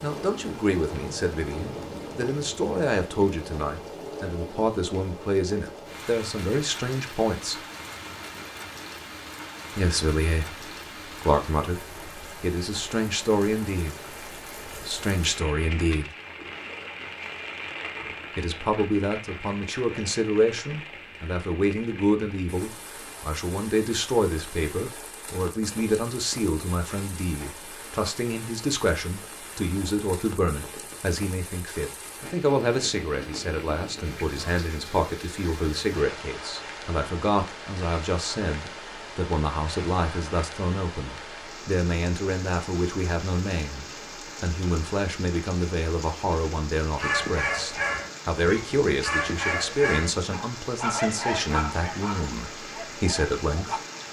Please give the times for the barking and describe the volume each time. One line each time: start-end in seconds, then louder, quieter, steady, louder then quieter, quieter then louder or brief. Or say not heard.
47.0-53.8 quieter.